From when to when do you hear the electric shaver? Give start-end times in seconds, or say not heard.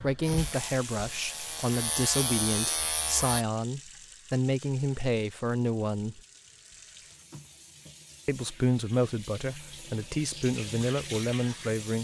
0.1-3.5.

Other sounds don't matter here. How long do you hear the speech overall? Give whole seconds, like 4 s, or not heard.
10 s.